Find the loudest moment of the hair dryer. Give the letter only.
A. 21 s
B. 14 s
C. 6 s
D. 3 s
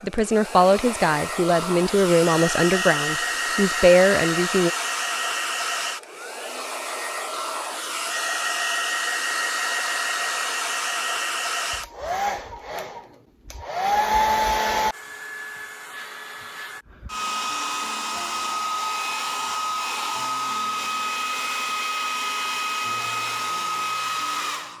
B.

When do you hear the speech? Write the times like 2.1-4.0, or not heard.
0.0-4.7.